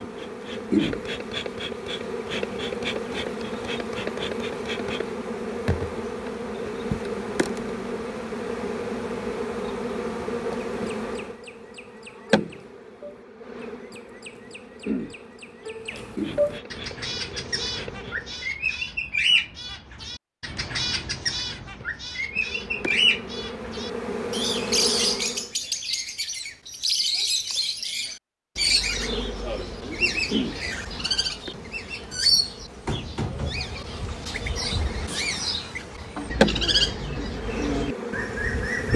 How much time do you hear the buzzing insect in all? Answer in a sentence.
The buzzing insect can be heard for 32 seconds in total.